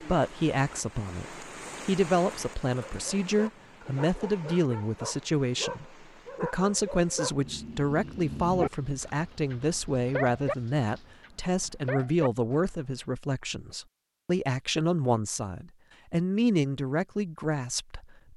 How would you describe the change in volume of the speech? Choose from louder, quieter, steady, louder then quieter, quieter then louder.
steady.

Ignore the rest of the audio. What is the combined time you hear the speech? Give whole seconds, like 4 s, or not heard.
18 s.